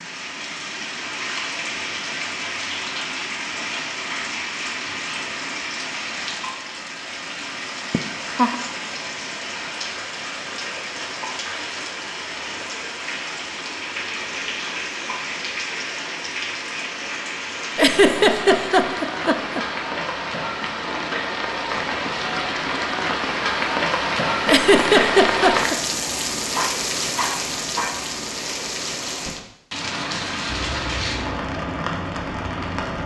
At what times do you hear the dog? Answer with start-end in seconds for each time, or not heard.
26.5-28.1.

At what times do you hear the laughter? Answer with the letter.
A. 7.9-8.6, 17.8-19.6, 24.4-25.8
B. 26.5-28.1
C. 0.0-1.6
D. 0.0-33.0
A.